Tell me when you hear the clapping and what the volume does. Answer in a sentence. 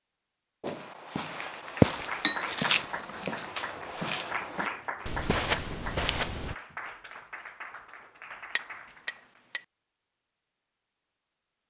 You can hear the clapping from 1.6 to 9.4 s, getting quieter.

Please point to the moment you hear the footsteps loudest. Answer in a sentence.
The volume of the footsteps peaks at 2 seconds.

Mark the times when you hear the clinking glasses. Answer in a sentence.
You can hear the clinking glasses from 2.2 to 3.5 s and from 8.6 to 9.6 s.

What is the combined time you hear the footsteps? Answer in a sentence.
You can hear the footsteps for 6 seconds altogether.